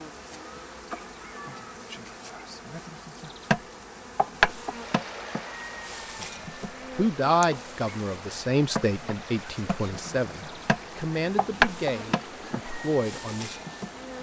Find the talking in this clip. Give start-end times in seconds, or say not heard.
7.0-13.6.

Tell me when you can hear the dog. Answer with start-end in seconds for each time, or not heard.
not heard.